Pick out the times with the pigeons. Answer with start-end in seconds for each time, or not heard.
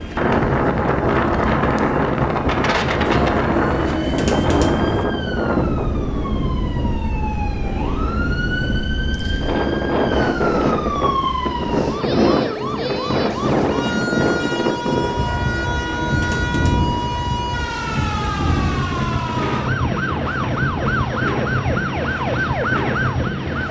3.0-5.0, 15.1-17.1.